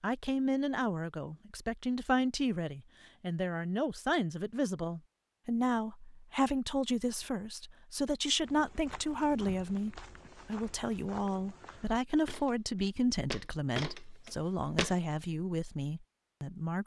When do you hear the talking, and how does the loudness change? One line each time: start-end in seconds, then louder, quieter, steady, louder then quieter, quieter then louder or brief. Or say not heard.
0.0-16.8 steady.